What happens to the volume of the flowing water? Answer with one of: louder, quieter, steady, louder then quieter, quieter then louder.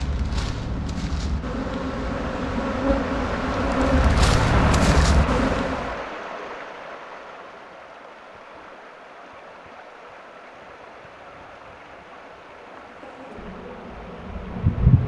louder then quieter.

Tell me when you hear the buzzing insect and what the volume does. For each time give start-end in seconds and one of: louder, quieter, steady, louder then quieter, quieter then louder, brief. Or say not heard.
0.0-6.0 louder
12.8-15.0 brief.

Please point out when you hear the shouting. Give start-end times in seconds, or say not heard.
not heard.